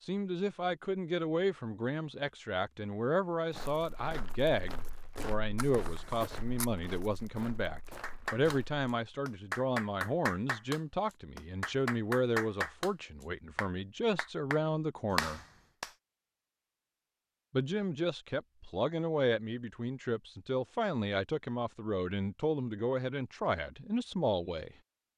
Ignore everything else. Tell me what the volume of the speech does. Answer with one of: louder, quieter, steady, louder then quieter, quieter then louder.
steady.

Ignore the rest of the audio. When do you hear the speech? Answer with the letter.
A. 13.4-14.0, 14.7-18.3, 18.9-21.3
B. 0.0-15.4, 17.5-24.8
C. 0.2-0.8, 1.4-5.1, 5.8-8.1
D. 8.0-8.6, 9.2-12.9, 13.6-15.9
B.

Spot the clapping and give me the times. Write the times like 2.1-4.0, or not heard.
8.0-8.6, 9.2-12.9, 13.6-15.9.